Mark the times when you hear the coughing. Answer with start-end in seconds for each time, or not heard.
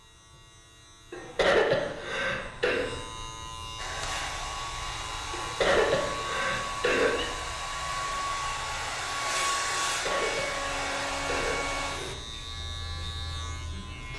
1.1-2.9, 5.3-7.3, 9.8-11.7.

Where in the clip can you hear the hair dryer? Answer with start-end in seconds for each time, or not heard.
3.8-12.2.